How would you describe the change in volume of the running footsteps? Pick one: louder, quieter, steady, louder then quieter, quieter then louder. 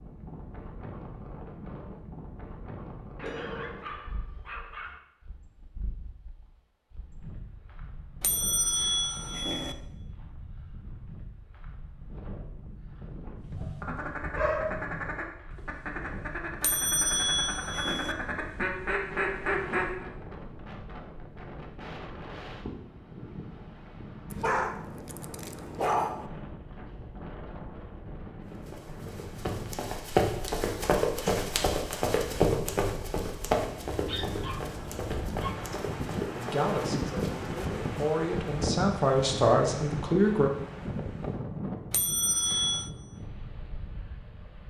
quieter.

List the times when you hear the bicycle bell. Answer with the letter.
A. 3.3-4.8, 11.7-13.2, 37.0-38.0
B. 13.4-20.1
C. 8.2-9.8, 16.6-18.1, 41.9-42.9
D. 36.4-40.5
C.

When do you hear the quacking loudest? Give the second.
20 s.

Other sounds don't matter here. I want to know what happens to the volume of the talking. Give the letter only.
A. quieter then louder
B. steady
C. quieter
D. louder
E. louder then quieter
D.